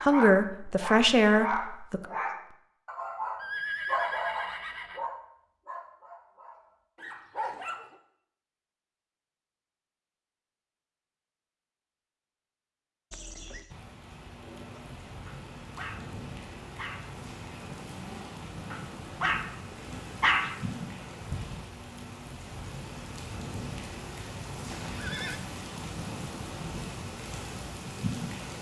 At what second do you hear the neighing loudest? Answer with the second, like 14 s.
4 s.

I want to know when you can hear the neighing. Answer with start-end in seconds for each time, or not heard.
3.4-5.0, 13.1-13.8, 24.6-25.4.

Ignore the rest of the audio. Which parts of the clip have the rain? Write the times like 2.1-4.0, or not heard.
13.7-28.5.